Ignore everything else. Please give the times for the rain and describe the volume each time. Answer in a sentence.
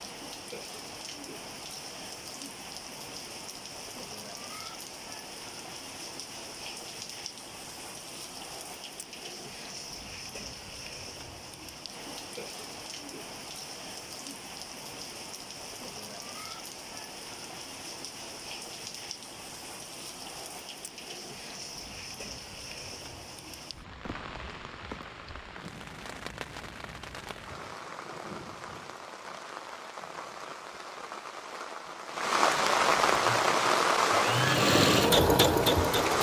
The rain can be heard from 0.0 to 36.1 s, getting louder.